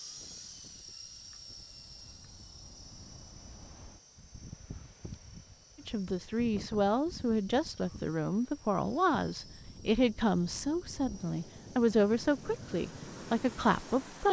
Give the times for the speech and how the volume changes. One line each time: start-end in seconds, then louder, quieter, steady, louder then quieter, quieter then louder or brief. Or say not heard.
5.8-14.2 steady.